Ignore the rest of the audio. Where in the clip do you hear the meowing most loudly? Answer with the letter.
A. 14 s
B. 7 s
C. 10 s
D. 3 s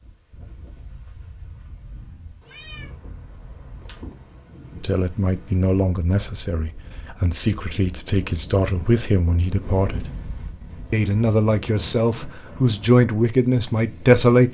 D.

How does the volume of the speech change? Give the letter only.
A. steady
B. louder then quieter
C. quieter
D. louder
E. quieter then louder
D.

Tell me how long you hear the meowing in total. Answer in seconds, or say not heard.
2 s.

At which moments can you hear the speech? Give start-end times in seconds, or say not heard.
4.8-10.2, 10.9-14.5.